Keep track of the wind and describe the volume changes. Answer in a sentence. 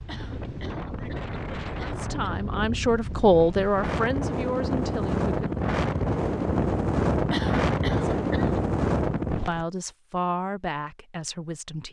The loudness of the wind goes up.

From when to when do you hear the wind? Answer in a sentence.
The wind can be heard from 0.0 to 9.7 s.